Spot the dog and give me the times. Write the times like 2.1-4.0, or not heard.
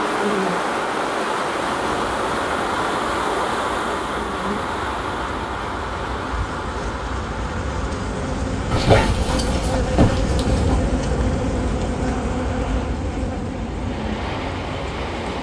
8.7-10.8.